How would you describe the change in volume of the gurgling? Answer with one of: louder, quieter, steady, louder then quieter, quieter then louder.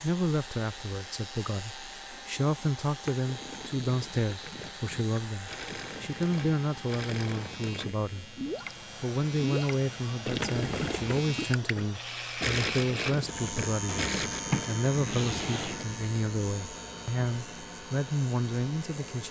louder.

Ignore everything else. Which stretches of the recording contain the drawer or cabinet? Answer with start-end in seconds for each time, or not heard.
2.1-3.2, 10.3-11.2, 13.8-15.8.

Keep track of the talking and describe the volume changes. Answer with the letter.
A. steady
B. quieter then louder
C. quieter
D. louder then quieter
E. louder
A.